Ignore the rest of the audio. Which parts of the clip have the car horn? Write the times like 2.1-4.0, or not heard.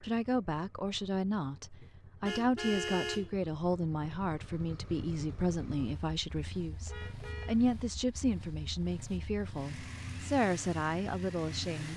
1.8-3.4, 6.8-8.1.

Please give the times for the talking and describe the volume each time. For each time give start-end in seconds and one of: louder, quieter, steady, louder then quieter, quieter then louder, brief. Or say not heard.
0.0-11.9 steady.